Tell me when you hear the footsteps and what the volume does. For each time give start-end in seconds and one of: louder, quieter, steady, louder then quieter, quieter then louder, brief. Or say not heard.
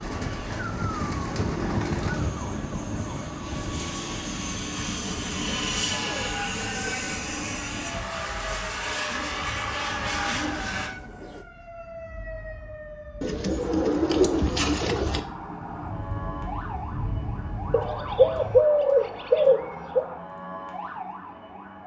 not heard.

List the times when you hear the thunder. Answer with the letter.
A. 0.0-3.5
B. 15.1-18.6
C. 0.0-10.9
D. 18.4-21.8
B.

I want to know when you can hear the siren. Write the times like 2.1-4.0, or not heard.
0.0-21.8.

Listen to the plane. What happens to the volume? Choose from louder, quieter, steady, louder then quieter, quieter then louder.
louder.